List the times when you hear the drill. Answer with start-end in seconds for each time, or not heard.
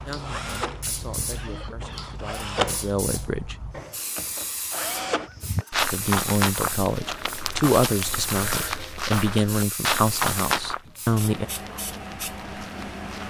0.0-5.3.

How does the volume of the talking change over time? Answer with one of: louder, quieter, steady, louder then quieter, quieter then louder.
louder.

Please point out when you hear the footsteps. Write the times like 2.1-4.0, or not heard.
5.2-13.2.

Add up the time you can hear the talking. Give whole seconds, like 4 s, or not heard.
9 s.